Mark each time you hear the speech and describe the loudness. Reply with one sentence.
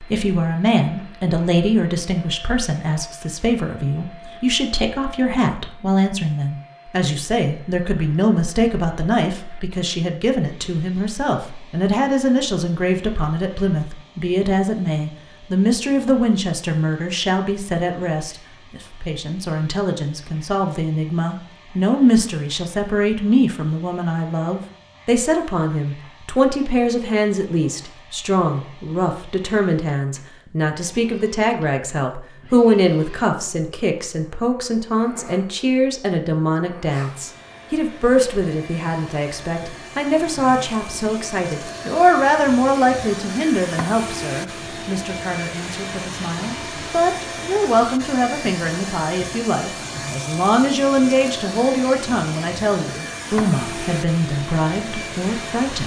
You can hear the speech from 0.0 to 55.8 s, at a steady volume.